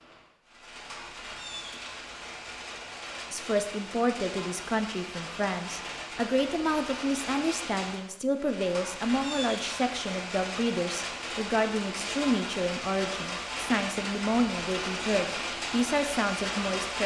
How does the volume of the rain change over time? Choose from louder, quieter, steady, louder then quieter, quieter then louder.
louder.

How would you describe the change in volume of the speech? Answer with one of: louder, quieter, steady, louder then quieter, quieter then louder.
steady.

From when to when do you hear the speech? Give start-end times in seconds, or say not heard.
3.3-17.0.